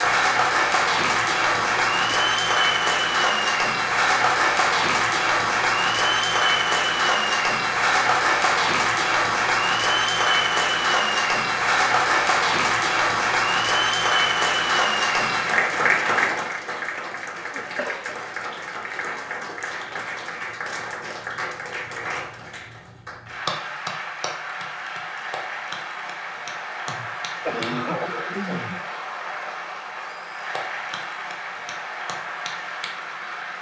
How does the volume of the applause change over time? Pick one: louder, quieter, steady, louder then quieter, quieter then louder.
quieter.